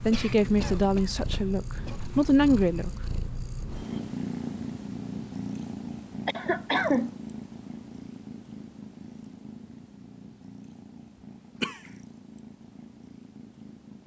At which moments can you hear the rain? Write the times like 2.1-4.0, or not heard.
not heard.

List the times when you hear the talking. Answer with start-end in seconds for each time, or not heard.
0.1-2.9.